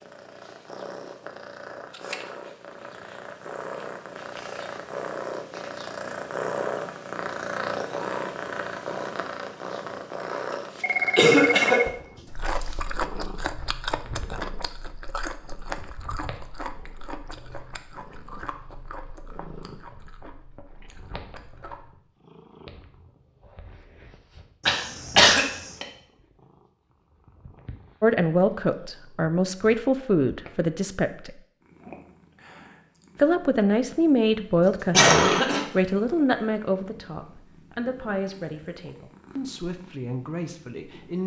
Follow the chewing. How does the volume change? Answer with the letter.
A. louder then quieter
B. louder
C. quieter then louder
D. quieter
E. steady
D.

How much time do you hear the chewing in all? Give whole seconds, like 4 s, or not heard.
10 s.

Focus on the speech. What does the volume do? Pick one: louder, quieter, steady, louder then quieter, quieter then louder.
quieter.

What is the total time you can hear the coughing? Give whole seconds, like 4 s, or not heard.
3 s.